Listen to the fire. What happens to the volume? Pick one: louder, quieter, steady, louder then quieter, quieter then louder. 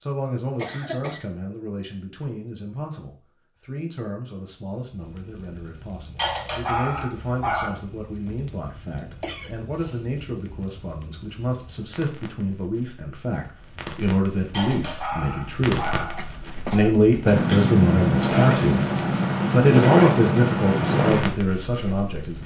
louder.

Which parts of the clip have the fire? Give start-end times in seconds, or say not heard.
4.9-22.4.